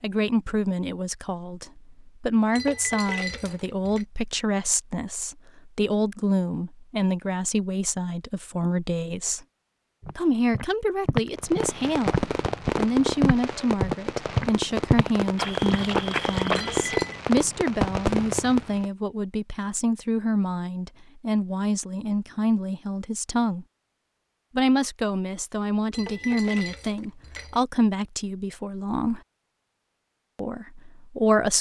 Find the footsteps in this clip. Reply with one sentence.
You can hear the footsteps from 10.0 to 16.9 s.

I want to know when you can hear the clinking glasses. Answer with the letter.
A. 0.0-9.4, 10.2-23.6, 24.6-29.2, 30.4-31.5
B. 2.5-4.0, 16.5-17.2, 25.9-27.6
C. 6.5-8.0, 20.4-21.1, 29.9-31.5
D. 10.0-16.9
B.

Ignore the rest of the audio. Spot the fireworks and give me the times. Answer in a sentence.
You can hear the fireworks from 11.3 to 18.9 s.